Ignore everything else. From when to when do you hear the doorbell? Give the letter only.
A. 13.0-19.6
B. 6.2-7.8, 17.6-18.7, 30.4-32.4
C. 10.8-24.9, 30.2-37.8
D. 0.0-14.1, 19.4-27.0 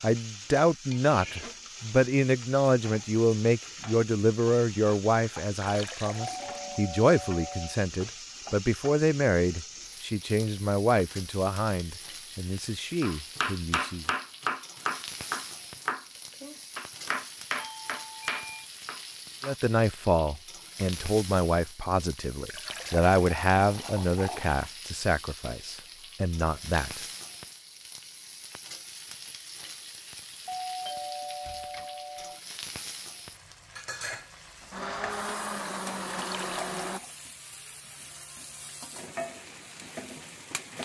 B.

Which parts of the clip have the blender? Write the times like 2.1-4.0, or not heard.
34.6-37.0.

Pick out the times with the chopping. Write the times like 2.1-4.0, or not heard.
13.0-19.6.